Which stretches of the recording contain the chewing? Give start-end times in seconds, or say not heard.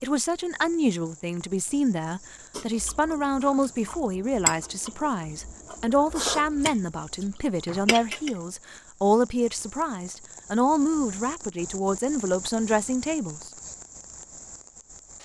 2.5-8.3.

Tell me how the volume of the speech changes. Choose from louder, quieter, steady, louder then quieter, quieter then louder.
steady.